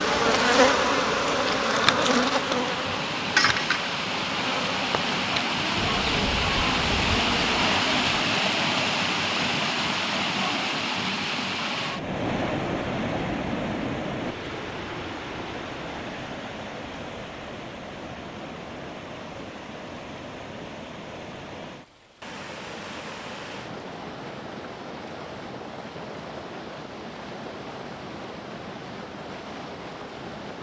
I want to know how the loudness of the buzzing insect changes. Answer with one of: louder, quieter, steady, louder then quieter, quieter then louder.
quieter.